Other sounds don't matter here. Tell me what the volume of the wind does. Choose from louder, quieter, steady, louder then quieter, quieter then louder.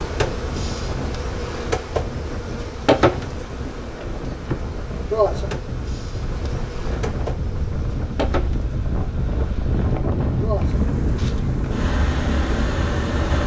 louder.